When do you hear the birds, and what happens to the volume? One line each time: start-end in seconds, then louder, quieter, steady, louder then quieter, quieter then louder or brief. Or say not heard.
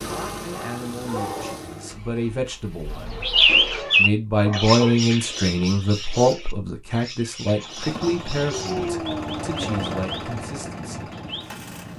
3.1-11.9 quieter.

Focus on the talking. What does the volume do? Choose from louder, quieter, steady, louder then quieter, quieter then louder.
louder then quieter.